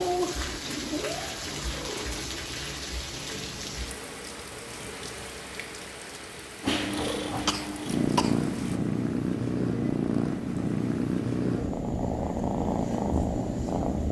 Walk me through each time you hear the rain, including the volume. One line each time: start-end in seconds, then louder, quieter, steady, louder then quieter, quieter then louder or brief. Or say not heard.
0.0-8.8 quieter.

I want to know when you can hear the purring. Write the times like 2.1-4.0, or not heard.
0.0-2.2, 6.6-14.0.